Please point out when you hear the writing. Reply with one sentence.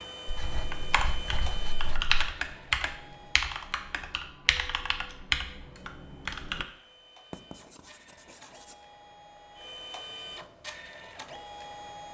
The writing can be heard from 0.2 to 2.1 s and from 7.3 to 8.8 s.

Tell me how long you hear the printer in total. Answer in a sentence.
The printer can be heard for 12 seconds in total.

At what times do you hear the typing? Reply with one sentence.
You can hear the typing from 0.5 to 6.7 s.